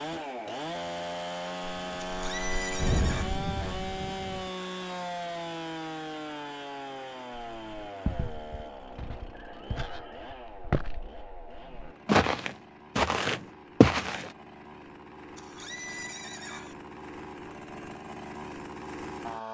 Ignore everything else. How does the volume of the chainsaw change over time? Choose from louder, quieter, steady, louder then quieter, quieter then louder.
quieter then louder.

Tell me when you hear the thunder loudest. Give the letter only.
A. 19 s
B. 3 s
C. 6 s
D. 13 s
B.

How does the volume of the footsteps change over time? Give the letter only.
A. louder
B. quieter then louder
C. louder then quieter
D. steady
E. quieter
A.